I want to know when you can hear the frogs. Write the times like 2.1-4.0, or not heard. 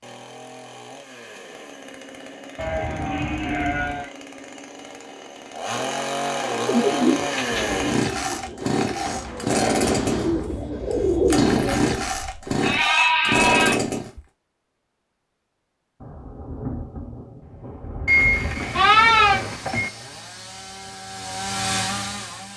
not heard.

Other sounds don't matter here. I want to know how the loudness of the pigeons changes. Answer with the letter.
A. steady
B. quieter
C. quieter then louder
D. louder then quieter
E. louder
C.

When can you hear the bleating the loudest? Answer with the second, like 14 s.
19 s.